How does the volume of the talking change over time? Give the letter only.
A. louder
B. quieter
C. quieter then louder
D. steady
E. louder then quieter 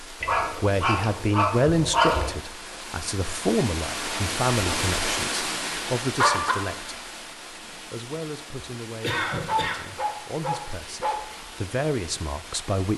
C.